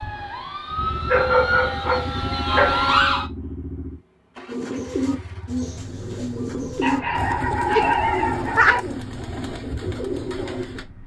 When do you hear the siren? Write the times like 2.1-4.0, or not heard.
0.0-3.2.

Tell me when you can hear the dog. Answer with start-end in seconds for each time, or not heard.
1.1-2.9, 6.8-8.8.